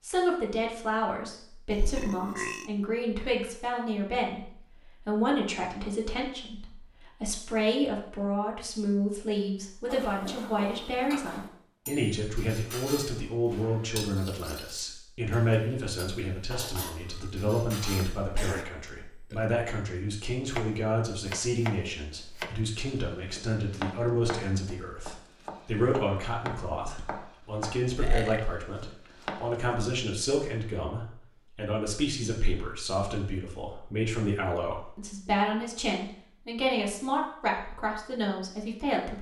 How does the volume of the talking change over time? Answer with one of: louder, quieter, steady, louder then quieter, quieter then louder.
steady.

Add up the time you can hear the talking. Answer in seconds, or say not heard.
39 s.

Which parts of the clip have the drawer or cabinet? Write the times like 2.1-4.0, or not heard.
not heard.